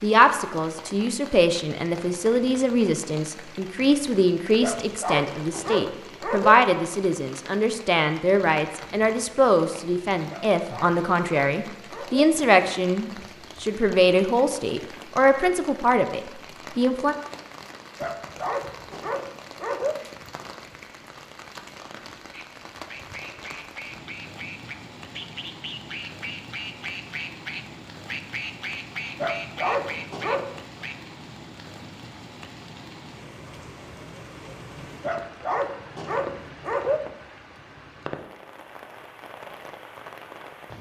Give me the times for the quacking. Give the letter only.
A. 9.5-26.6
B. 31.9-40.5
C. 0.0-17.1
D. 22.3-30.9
D.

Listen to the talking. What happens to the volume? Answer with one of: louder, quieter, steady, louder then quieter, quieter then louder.
steady.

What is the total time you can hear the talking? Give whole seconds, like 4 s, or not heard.
17 s.